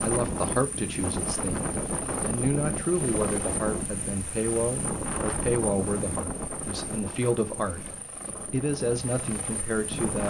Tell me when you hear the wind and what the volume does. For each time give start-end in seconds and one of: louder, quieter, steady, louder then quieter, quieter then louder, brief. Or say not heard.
0.0-10.2 quieter.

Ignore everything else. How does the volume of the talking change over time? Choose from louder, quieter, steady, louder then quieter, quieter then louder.
steady.